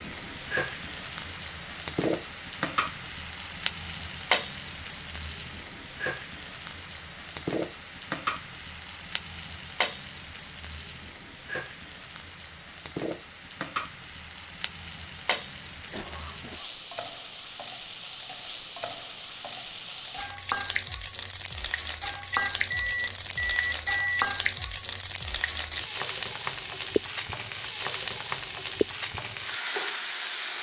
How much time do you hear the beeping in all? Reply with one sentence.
The beeping can be heard for 2 seconds in total.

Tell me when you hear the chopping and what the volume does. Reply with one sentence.
The chopping can't be heard in this clip.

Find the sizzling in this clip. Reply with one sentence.
You can hear the sizzling from 0.0 to 30.5 s.